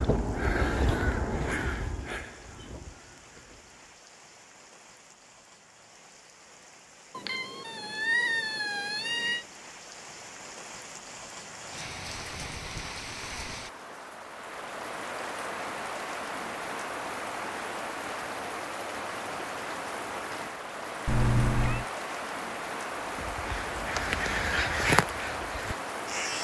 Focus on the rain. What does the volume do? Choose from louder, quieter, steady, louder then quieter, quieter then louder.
louder.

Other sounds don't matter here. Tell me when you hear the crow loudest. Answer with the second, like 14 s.
25 s.